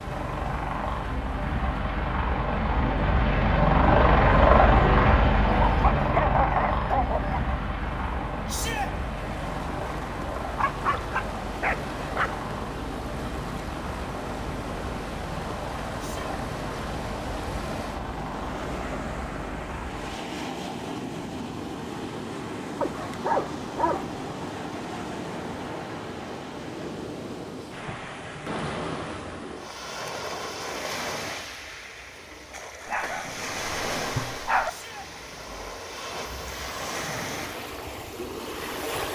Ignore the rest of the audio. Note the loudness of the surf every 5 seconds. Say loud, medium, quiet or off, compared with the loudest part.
medium, medium, loud, loud, loud, loud, loud, loud.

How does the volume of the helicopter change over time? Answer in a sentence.
The loudness of the helicopter goes down.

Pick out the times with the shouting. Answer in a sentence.
The shouting can be heard from 8.4 to 8.9 s, from 15.9 to 16.4 s and from 34.6 to 35.1 s.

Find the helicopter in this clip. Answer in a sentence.
The helicopter can be heard from 0.0 to 20.1 s.